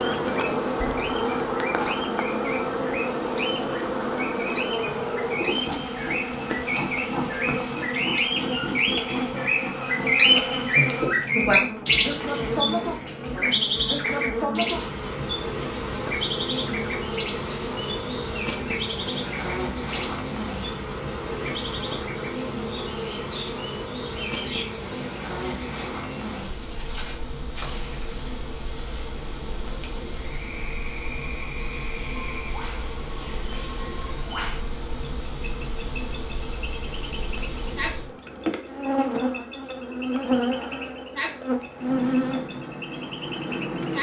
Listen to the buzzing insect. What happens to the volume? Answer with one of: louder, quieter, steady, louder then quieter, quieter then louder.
quieter then louder.